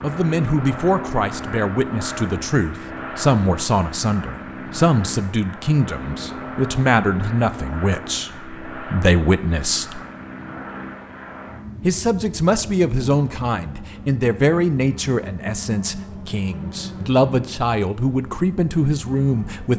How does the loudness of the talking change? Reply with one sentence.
The loudness of the talking stays about the same.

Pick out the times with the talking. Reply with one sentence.
The talking can be heard from 0.0 to 10.0 s and from 11.8 to 19.7 s.